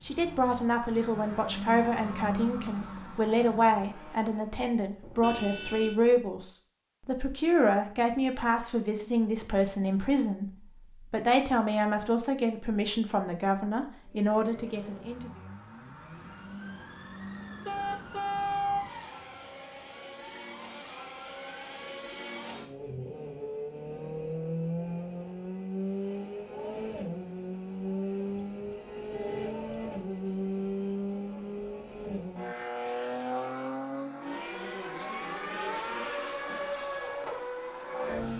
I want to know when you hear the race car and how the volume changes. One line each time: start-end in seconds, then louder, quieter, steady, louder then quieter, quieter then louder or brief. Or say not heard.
0.0-4.6 louder then quieter
14.0-38.3 louder.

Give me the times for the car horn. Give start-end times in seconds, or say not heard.
5.0-6.0, 17.6-18.9, 28.2-29.7.